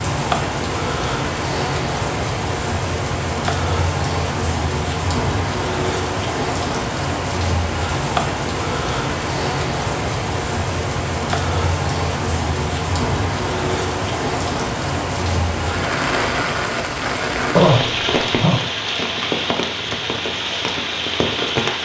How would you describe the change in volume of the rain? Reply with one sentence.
The volume of the rain stays about the same.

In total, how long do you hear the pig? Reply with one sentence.
You can't hear the pig here.